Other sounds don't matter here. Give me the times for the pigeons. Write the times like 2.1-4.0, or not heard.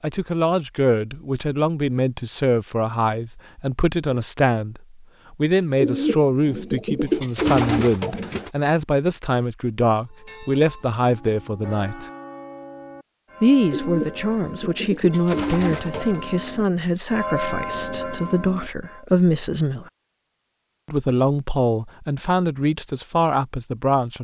5.8-8.5, 13.7-16.2.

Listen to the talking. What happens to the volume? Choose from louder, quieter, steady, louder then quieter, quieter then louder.
steady.